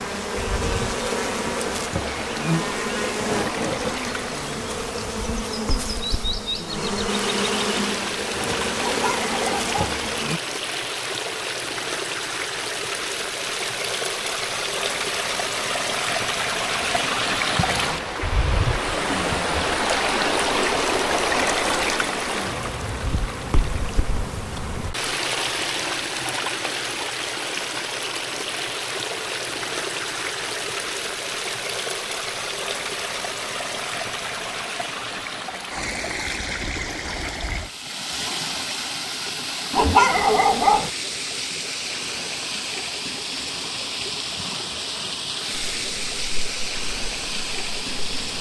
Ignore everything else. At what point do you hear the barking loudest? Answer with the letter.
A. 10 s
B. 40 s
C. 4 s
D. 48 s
B.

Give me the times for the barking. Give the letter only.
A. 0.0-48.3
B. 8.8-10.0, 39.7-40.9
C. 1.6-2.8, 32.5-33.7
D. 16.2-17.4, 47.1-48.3
B.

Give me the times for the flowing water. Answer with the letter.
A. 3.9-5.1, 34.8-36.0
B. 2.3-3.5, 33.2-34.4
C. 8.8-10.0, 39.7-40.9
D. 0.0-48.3
D.